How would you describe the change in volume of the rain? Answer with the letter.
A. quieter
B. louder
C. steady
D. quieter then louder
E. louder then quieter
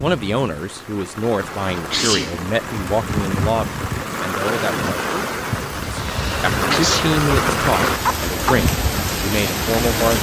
B.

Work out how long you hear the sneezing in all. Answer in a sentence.
You can hear the sneezing for 2 seconds altogether.